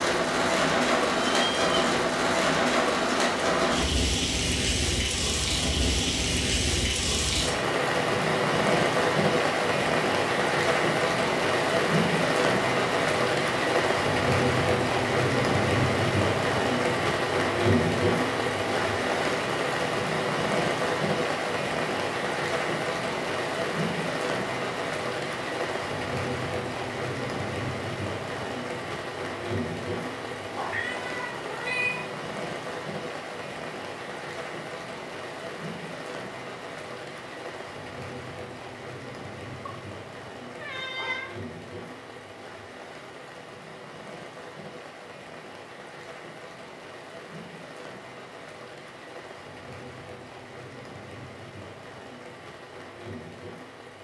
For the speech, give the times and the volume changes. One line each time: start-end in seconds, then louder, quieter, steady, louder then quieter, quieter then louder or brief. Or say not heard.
not heard.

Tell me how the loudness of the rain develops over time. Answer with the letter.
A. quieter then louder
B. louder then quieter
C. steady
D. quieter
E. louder
D.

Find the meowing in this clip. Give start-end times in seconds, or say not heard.
1.3-1.9, 30.6-32.0, 39.6-41.3.